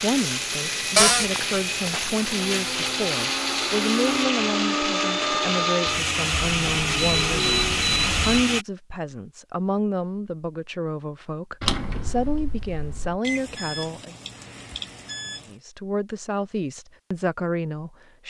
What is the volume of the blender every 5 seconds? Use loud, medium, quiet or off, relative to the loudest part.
loud, loud, off, off.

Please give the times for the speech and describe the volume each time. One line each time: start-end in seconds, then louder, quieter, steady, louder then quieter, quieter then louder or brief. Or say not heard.
0.0-14.2 steady
15.4-18.2 brief.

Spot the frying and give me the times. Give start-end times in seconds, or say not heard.
0.0-4.2.